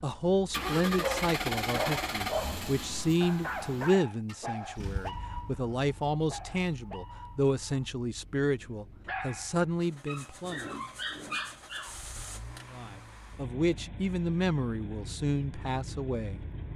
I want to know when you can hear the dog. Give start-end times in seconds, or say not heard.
0.9-11.9.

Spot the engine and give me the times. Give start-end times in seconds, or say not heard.
0.0-16.7.